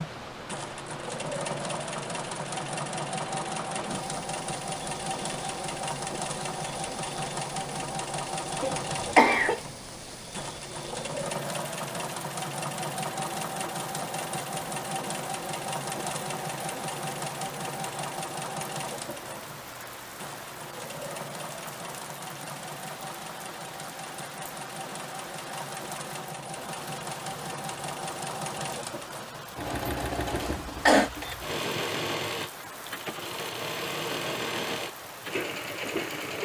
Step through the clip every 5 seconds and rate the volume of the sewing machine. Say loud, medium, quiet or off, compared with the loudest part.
loud, loud, loud, loud, medium, loud, loud, loud.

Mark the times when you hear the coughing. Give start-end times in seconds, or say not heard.
8.6-9.6, 30.4-31.1.